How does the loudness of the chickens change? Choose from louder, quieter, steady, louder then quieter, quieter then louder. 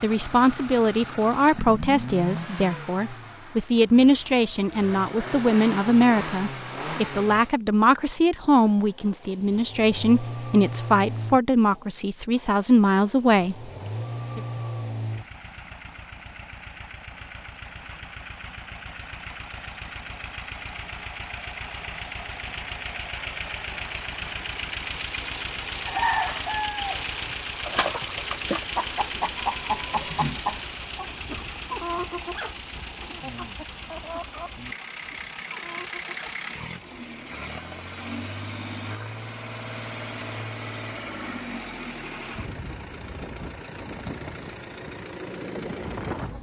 quieter.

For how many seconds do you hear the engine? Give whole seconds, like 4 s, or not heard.
46 s.